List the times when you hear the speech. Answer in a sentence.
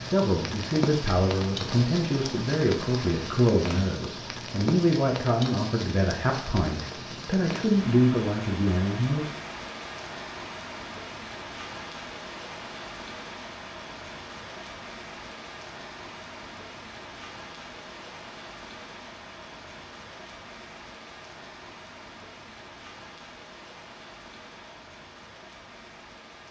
The speech can be heard from 0.0 to 9.3 s.